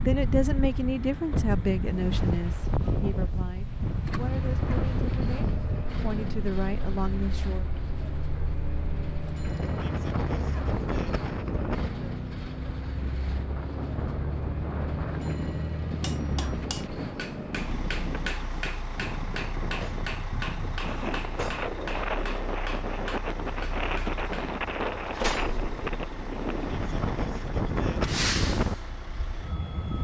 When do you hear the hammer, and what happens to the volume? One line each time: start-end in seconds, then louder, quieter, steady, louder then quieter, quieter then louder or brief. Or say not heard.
16.0-24.6 steady.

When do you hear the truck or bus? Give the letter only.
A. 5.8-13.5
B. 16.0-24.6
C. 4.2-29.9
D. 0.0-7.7
C.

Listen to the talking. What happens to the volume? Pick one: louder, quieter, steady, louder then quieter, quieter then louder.
quieter then louder.